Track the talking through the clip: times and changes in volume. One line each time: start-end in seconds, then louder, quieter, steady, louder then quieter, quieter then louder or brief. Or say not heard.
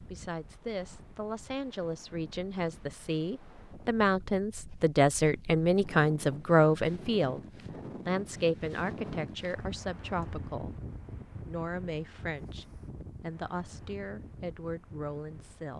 0.1-7.4 louder
8.1-10.8 brief
11.4-15.7 quieter then louder.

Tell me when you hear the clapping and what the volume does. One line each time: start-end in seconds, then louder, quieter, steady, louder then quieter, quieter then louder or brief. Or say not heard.
not heard.